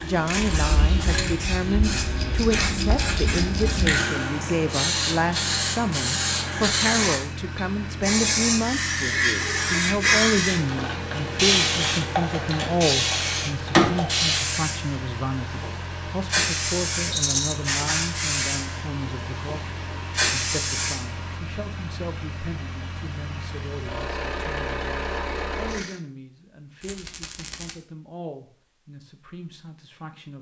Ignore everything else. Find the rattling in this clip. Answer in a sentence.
You can hear the rattling from 1.9 to 4.0 s, from 17.1 to 17.6 s and from 26.8 to 27.8 s.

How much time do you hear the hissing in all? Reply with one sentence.
The hissing can be heard for 21 seconds in total.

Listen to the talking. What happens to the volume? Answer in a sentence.
The volume of the talking goes down.